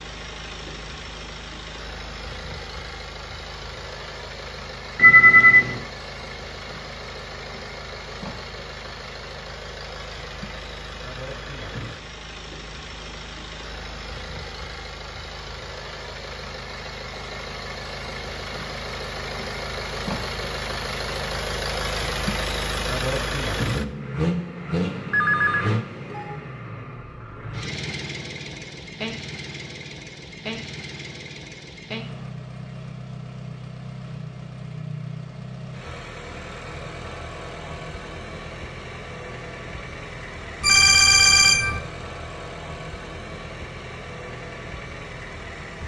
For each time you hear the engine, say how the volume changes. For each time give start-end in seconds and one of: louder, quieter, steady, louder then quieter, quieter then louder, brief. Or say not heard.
0.0-45.8 louder then quieter.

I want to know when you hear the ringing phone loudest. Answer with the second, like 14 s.
5 s.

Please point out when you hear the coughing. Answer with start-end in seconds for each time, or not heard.
not heard.